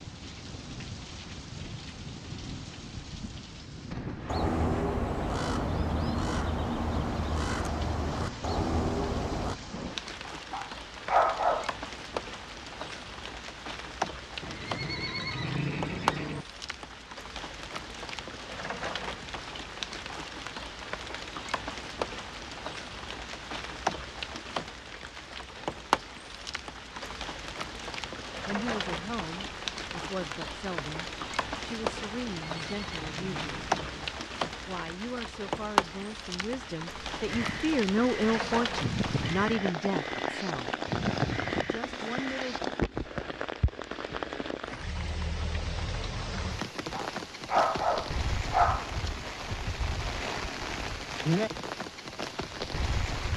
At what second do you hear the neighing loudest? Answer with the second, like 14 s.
16 s.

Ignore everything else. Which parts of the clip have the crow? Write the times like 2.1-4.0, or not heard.
4.2-9.6, 37.2-42.6.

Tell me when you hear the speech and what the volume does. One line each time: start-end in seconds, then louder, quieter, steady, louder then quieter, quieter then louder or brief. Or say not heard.
28.4-33.7 steady
34.6-40.8 louder
41.6-42.6 brief.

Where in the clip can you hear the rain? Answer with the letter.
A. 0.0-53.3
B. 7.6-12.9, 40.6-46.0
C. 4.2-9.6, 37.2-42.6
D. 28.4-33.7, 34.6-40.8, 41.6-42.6
A.